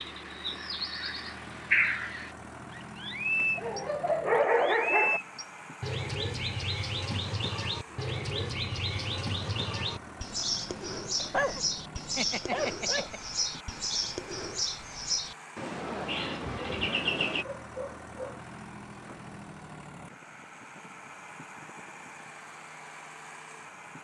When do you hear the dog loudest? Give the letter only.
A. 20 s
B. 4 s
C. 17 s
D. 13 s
B.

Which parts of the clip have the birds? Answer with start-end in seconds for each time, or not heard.
0.0-17.4.